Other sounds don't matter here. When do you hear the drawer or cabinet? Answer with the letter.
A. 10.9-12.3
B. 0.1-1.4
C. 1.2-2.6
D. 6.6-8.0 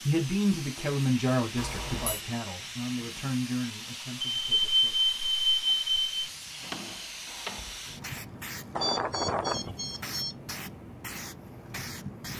D.